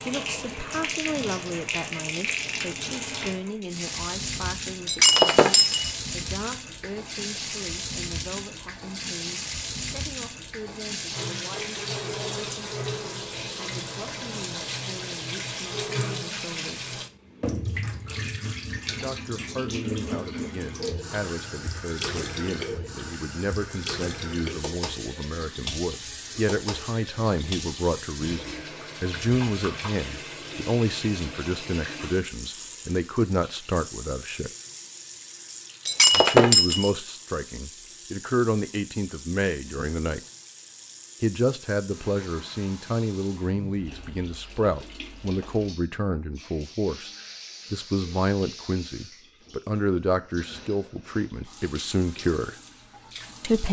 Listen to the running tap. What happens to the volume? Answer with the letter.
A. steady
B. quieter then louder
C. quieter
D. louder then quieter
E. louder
C.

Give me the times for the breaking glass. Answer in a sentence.
You can hear the breaking glass from 4.8 to 5.9 s and from 35.9 to 36.9 s.